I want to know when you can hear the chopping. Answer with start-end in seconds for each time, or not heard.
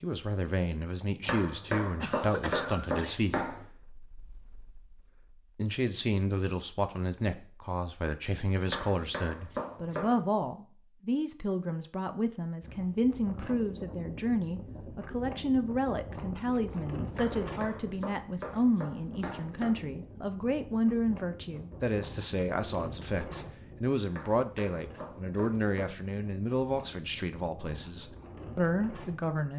1.2-3.6, 8.7-10.2, 17.1-19.8, 24.1-25.9.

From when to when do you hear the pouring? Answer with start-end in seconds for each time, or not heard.
not heard.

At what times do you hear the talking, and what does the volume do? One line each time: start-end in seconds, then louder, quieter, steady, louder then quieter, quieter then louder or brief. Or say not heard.
0.0-29.5 steady.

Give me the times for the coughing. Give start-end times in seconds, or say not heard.
2.0-3.2.